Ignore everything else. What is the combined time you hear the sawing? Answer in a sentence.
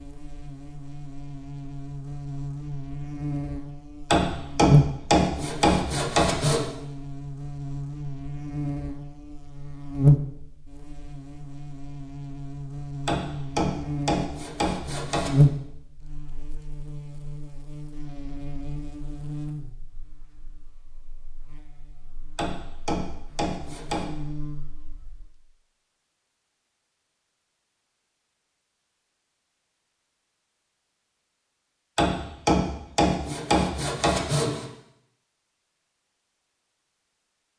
The sawing can be heard for 9 seconds in total.